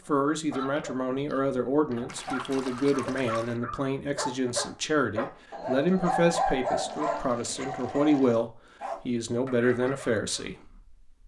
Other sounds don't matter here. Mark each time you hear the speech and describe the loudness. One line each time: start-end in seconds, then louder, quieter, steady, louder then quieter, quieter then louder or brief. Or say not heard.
0.1-11.0 steady.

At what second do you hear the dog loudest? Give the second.
7 s.